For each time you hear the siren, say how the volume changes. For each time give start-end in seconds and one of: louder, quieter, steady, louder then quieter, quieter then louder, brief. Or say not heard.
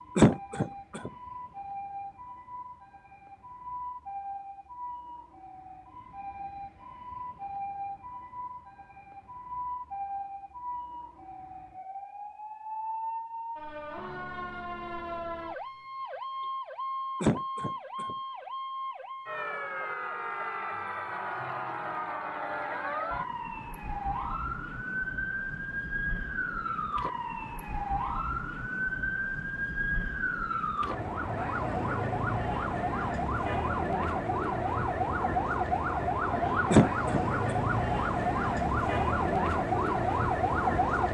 0.0-41.1 louder.